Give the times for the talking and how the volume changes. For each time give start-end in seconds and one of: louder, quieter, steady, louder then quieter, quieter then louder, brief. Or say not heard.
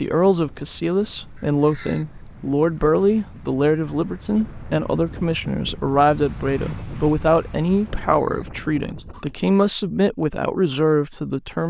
0.0-11.6 steady.